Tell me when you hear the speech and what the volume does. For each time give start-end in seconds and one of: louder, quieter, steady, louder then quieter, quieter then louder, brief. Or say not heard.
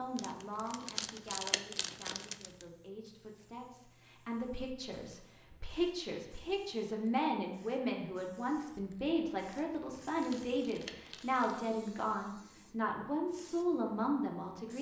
0.0-14.7 louder.